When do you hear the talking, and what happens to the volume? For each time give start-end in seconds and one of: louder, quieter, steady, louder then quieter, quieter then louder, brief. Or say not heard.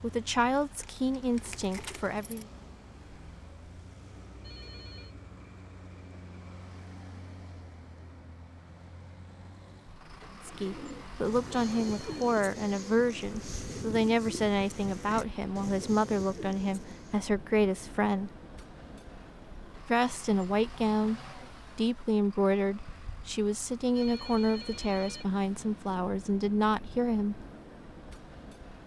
0.0-2.5 brief
10.4-18.3 steady
19.9-27.4 steady.